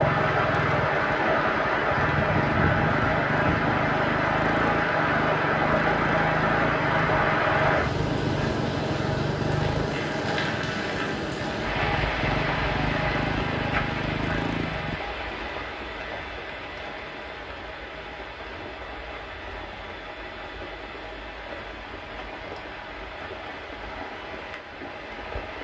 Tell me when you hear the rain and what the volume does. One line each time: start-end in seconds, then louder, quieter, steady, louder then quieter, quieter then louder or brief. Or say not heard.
0.0-25.5 quieter.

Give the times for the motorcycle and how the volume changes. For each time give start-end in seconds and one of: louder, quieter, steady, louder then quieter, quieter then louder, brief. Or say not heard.
0.0-15.0 steady.